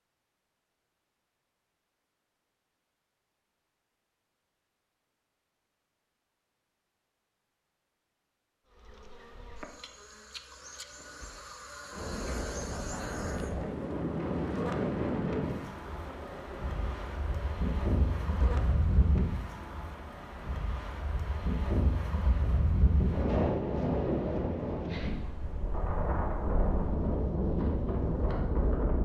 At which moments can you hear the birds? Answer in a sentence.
You can't hear the birds here.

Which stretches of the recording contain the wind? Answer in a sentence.
The wind can be heard from 11.9 to 29.0 s.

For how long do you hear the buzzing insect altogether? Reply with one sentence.
You can hear the buzzing insect for 11 seconds altogether.